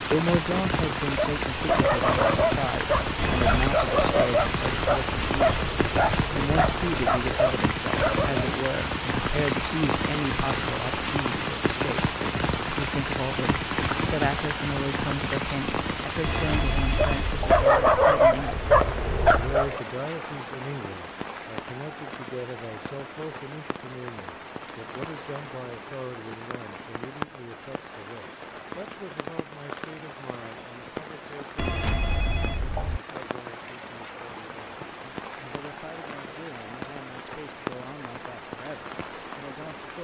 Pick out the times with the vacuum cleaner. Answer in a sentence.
You can't hear the vacuum cleaner here.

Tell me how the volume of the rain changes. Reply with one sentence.
The loudness of the rain goes down.